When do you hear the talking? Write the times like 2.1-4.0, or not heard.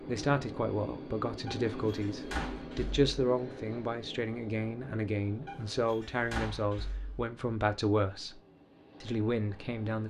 0.1-8.4, 9.0-10.0.